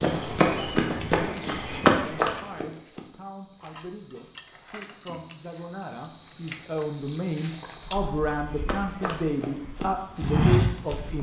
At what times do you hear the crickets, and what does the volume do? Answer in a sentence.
The crickets can be heard from 0.0 to 11.1 s, getting louder then quieter.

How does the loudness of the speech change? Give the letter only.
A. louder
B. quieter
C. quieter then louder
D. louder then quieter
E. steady
A.